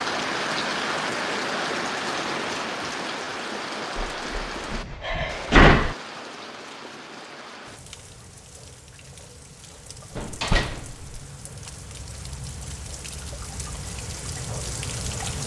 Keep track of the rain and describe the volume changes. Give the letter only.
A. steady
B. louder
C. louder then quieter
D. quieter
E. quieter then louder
E.